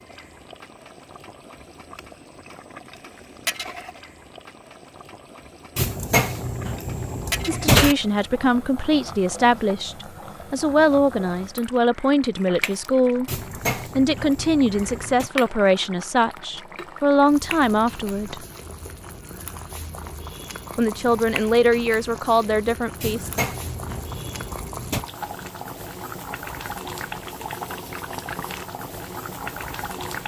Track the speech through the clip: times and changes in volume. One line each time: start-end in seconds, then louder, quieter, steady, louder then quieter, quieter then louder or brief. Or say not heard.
7.5-18.4 steady
20.8-23.3 brief.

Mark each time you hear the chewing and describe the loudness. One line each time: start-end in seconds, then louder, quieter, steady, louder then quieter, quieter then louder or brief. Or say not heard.
not heard.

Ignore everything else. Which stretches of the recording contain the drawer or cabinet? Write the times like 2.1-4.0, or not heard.
5.8-8.0, 13.2-15.3, 23.0-25.1.